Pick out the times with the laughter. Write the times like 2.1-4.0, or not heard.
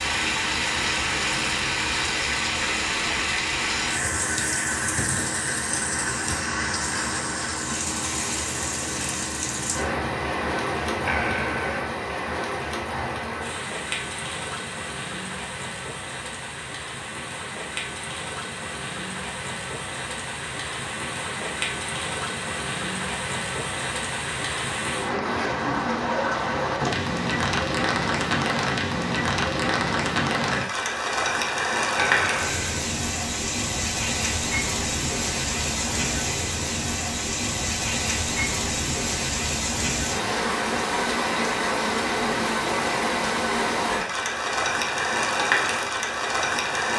11.1-11.7, 31.9-32.8.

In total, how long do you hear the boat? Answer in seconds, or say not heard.
12 s.